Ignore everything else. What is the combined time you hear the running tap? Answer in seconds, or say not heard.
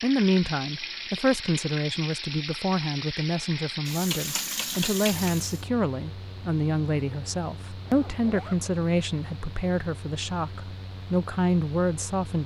6 s.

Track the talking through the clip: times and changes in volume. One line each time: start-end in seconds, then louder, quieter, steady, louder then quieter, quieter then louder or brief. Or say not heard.
0.0-12.4 steady.